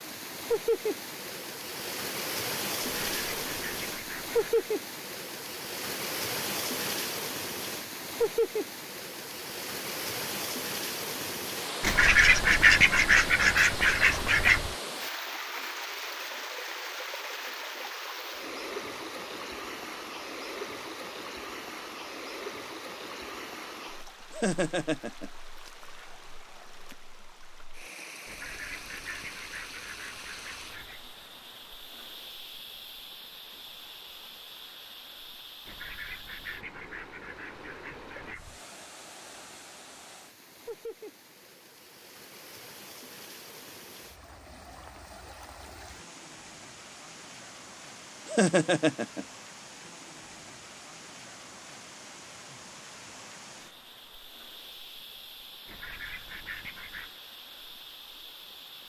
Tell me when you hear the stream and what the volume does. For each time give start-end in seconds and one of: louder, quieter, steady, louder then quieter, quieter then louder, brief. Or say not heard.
0.0-58.8 quieter.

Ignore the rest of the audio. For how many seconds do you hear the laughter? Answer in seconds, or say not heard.
2 s.